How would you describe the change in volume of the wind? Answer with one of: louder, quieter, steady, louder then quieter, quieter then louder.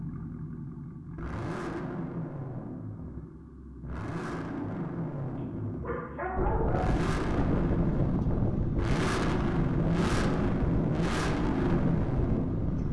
steady.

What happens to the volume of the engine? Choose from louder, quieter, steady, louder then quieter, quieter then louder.
louder.